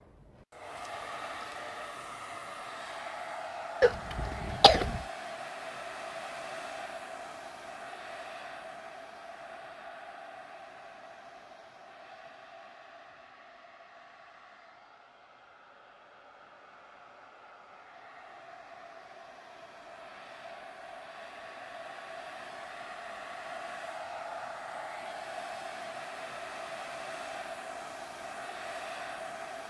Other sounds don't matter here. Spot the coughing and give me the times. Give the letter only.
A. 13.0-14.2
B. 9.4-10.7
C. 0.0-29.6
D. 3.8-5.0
D.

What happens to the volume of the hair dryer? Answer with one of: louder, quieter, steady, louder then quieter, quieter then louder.
quieter then louder.